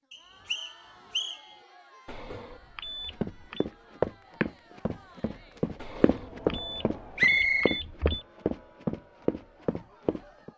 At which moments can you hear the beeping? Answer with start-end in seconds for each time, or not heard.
2.0-3.6, 5.8-8.2.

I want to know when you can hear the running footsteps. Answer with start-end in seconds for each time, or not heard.
3.1-10.5.